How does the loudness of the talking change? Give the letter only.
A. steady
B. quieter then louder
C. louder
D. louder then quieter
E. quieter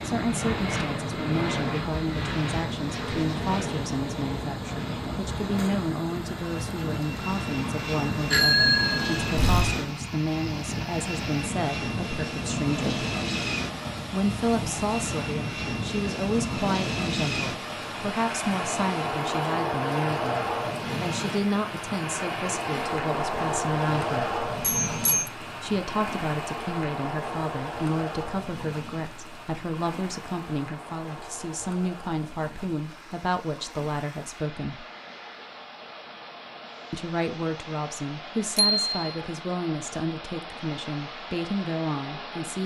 A.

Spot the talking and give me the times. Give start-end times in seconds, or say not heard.
0.0-13.1, 14.1-24.4, 25.6-34.9, 36.9-42.6.